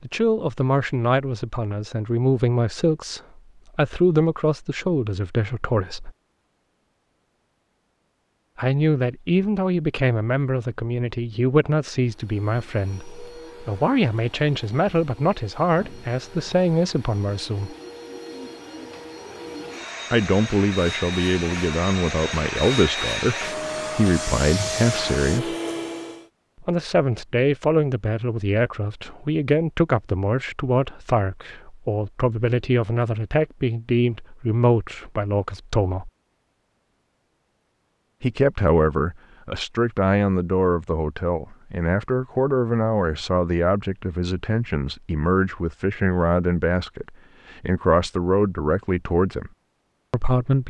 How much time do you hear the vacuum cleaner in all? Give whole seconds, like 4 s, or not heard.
14 s.